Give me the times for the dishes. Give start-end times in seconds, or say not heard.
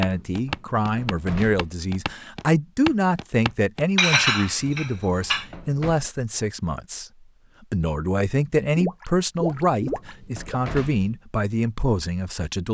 4.0-5.5.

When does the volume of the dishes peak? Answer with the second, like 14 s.
4 s.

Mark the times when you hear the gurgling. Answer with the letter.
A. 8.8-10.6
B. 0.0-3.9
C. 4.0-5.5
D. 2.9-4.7
A.